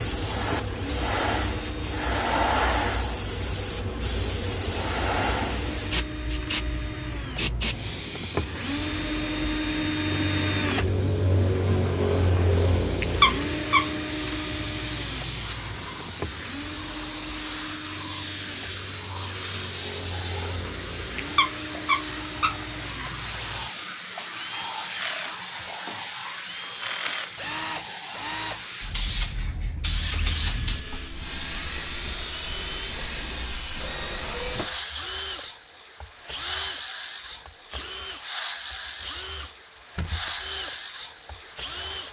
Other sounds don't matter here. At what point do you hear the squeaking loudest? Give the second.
13 s.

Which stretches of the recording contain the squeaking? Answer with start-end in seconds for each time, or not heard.
13.0-13.9, 21.1-22.6.